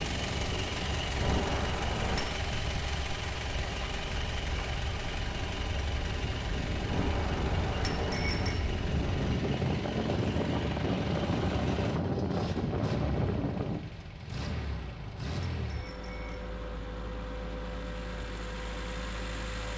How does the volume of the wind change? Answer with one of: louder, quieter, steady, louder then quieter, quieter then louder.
louder.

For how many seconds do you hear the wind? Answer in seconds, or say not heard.
14 s.